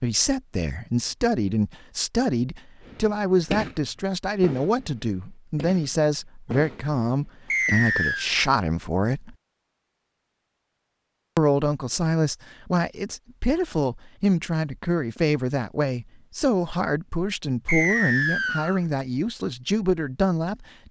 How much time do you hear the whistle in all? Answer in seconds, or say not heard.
2 s.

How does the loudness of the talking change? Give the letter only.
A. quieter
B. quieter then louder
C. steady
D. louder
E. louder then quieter
C.